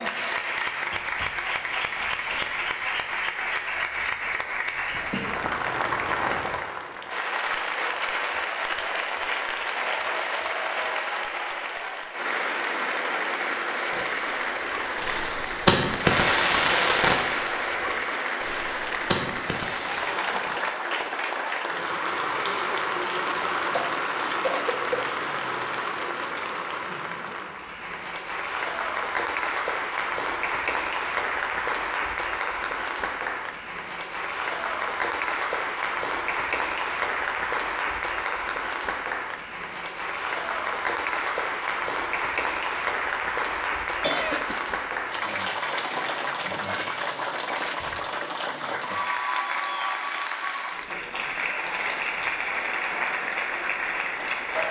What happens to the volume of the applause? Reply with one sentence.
The volume of the applause stays about the same.